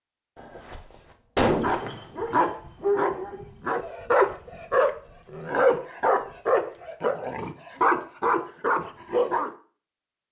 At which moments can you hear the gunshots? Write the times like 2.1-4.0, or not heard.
0.3-2.2.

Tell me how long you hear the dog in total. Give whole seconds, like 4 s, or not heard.
8 s.